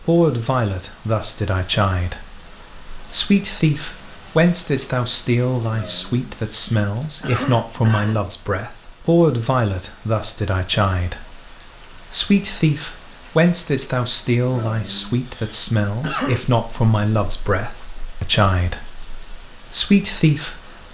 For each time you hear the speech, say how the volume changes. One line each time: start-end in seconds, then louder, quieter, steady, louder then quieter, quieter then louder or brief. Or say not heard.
0.0-20.8 steady.